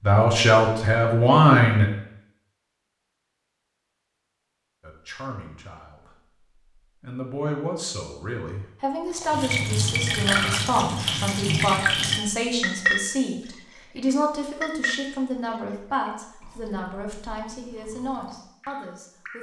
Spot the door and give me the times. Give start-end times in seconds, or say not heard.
not heard.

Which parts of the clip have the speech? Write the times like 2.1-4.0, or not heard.
0.0-1.9, 4.8-6.1, 7.0-19.3.